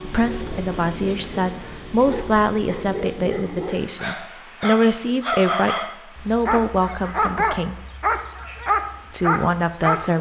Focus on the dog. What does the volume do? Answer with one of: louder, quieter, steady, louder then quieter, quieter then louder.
louder.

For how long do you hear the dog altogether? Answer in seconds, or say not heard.
10 s.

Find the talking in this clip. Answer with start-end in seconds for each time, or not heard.
0.0-7.8, 9.1-10.1.